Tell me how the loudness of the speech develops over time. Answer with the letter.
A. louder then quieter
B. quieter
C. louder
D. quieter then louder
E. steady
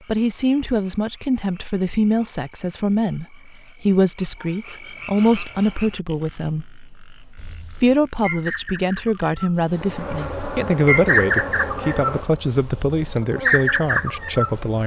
E.